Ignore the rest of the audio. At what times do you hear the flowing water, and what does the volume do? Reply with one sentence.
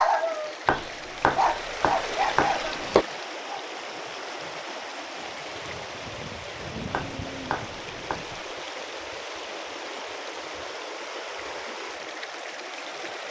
The flowing water can be heard from 0.0 to 13.2 s, at a steady volume.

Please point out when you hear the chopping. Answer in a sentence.
The chopping can be heard from 0.7 to 3.0 s and from 6.9 to 8.3 s.